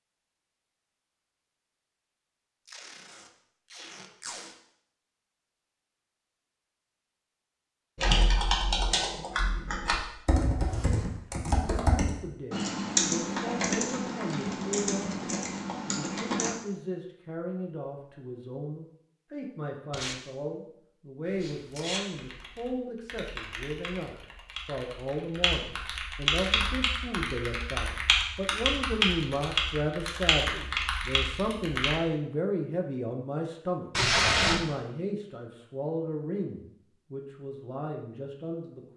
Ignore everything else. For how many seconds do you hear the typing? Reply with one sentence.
You can hear the typing for 19 seconds altogether.